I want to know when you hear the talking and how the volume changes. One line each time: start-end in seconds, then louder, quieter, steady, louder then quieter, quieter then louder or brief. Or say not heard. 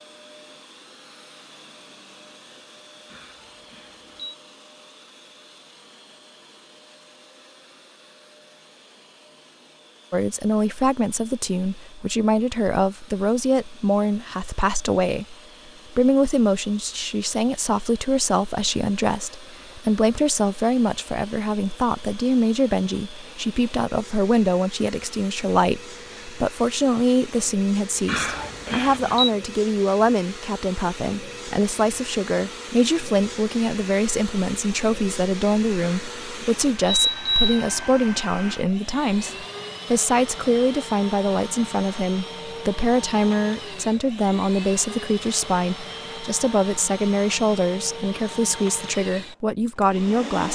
10.1-50.5 steady.